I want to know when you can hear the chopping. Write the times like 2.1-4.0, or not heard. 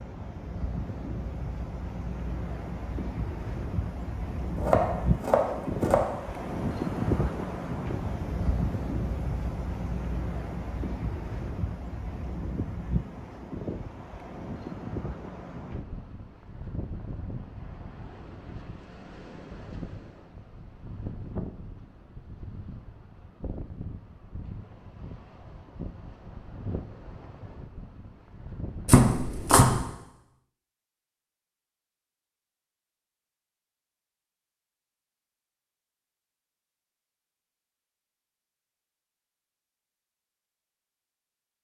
4.5-6.1, 28.9-29.9.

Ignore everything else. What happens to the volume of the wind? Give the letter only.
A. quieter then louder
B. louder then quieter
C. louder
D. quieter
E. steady
D.